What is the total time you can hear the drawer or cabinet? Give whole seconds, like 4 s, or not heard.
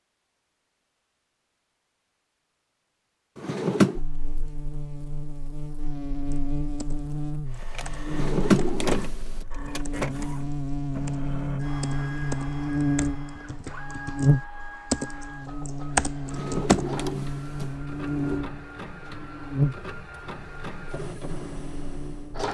4 s.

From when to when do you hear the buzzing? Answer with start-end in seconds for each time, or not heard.
4.0-22.4.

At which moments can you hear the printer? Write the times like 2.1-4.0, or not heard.
7.5-22.4.